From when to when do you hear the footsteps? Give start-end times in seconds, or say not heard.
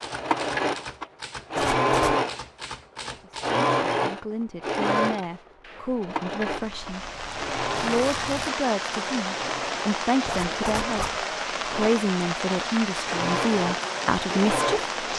not heard.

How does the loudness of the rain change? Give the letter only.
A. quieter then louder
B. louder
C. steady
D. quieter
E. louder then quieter
C.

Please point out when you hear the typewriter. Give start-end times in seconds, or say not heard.
0.0-3.6.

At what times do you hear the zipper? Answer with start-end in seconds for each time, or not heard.
1.6-2.1, 6.7-8.6, 10.2-11.2.